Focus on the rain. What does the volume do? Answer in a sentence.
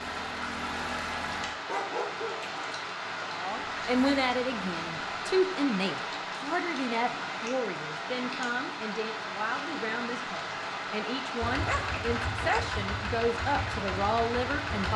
The loudness of the rain stays about the same.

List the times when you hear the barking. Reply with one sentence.
The barking can be heard from 1.6 to 2.5 s and from 11.7 to 12.8 s.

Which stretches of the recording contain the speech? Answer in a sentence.
The speech can be heard from 3.2 to 14.9 s.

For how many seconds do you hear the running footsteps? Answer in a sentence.
The running footsteps can't be heard in this clip.